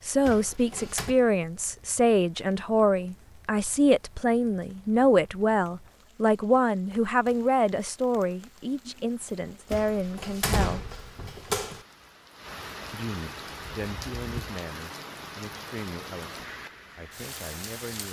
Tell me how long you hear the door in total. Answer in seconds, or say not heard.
3 s.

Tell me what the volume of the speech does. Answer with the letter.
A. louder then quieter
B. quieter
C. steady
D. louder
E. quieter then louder
B.